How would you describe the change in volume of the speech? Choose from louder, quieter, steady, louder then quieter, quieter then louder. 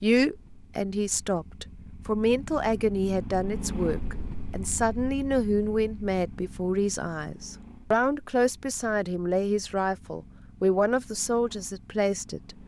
steady.